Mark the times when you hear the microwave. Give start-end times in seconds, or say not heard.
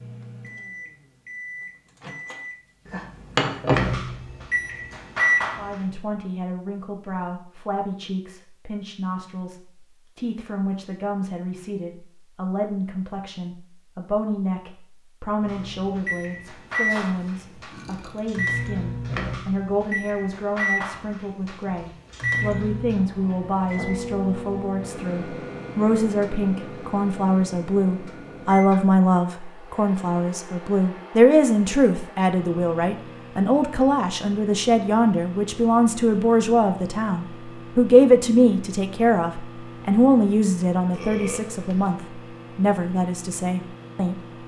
0.0-5.8, 15.4-44.4.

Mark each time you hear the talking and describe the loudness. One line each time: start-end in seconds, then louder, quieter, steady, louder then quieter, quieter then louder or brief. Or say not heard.
5.5-44.1 louder.